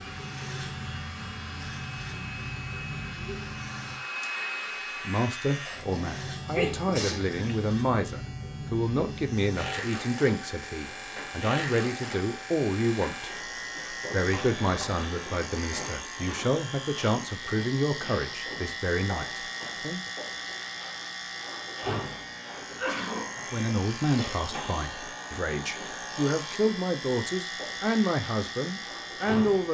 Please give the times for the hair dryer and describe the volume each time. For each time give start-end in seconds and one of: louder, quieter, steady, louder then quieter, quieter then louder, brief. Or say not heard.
0.0-5.8 louder.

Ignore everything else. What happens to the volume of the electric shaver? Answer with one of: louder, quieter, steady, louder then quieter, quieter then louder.
steady.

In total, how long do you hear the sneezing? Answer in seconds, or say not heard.
3 s.